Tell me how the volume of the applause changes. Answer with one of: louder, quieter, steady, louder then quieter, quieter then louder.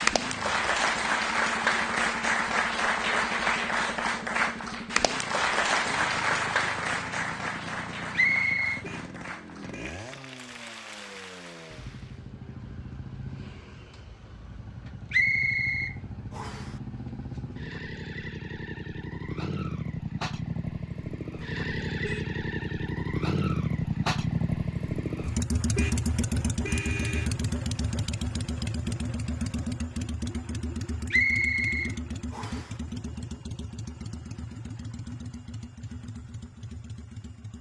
quieter.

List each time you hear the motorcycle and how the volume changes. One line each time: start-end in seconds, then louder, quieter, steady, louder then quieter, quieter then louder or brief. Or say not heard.
0.0-37.5 louder then quieter.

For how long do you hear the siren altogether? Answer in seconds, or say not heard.
not heard.